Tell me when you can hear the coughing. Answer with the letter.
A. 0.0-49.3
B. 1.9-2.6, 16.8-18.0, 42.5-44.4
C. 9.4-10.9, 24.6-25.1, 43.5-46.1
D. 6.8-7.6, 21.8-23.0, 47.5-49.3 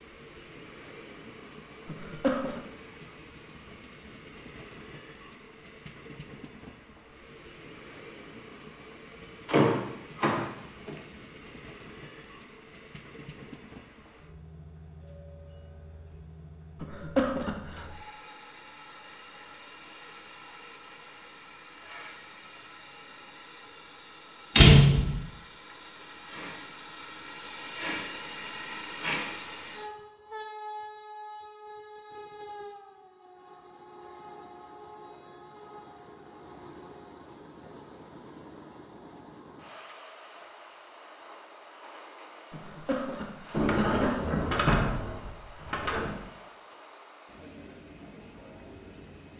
B.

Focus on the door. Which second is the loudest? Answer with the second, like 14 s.
25 s.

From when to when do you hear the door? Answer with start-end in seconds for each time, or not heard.
9.4-10.9, 24.6-25.1, 43.5-46.1.